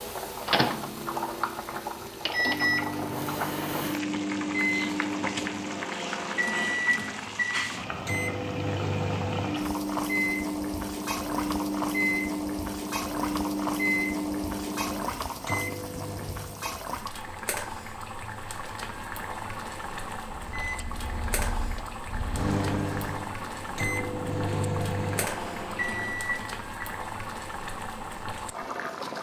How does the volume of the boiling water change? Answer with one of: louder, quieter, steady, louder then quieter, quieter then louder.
steady.